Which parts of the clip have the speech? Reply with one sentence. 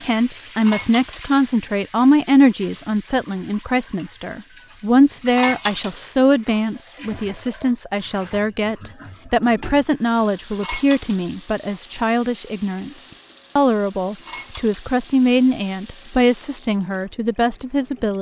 The speech can be heard from 0.0 to 18.1 s.